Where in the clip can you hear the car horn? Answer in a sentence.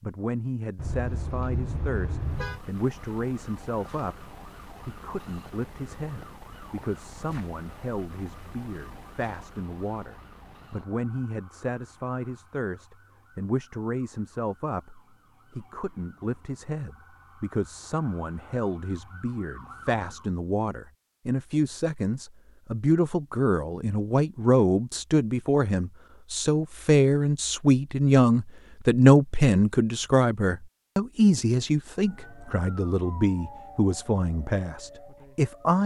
The car horn can be heard from 0.8 to 2.6 s.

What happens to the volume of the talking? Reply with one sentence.
The loudness of the talking goes up.